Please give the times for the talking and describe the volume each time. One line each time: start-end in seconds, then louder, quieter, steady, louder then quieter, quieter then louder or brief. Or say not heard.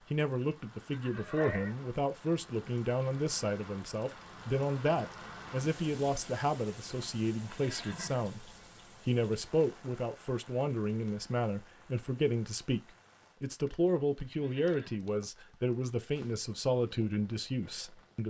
0.0-18.2 steady.